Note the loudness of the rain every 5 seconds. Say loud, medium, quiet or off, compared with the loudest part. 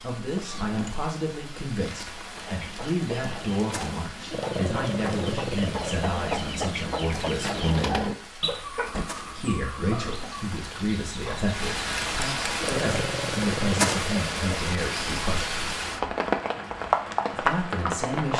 quiet, quiet, loud, loud.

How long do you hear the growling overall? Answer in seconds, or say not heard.
4 s.